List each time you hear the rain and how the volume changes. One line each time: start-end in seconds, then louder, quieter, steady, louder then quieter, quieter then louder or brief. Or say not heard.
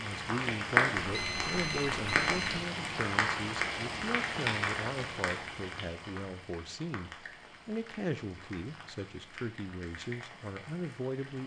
0.0-11.4 quieter.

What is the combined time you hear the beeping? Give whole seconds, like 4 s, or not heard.
2 s.